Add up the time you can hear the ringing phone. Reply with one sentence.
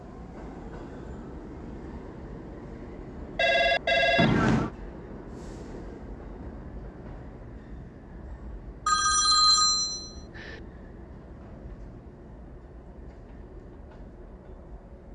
You can hear the ringing phone for 3 seconds altogether.